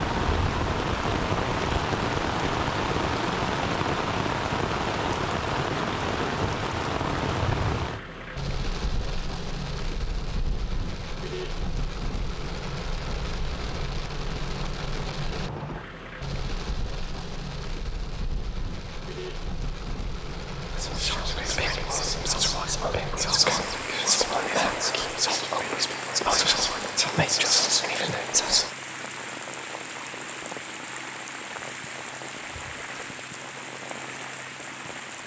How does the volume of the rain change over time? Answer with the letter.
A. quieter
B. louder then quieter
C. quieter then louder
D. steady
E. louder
A.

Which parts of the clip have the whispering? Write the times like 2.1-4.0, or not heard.
20.8-28.7.